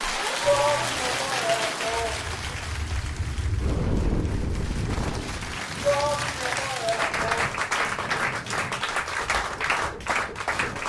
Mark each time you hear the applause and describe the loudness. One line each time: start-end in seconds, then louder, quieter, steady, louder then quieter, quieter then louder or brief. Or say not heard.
0.0-10.8 quieter then louder.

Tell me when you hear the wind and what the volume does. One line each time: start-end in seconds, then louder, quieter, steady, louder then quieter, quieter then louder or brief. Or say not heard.
0.0-10.8 louder then quieter.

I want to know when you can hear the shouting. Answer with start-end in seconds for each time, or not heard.
0.4-2.5, 5.8-7.5.